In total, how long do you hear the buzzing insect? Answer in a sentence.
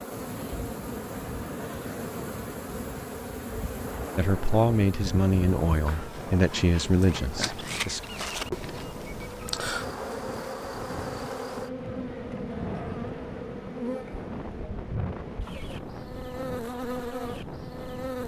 The buzzing insect can be heard for 18 seconds in total.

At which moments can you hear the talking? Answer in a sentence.
The talking can be heard from 4.2 to 8.0 s.